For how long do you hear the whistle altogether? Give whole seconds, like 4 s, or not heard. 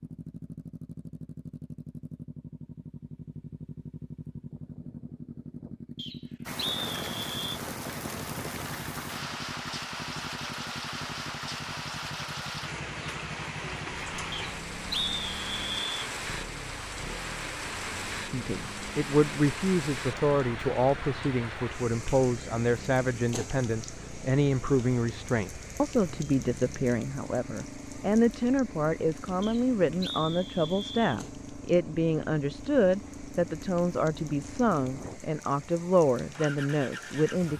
5 s.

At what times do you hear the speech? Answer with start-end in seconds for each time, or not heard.
18.2-37.5.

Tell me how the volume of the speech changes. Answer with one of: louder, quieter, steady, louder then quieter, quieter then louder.
steady.